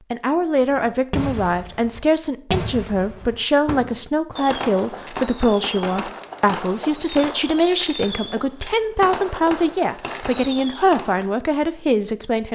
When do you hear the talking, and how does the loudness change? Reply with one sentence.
The talking can be heard from 0.1 to 12.5 s, at a steady volume.